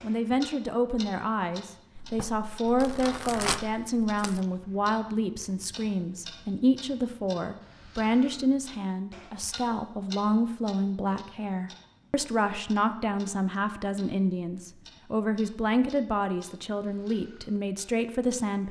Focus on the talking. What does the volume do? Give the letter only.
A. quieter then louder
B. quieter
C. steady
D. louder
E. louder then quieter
C.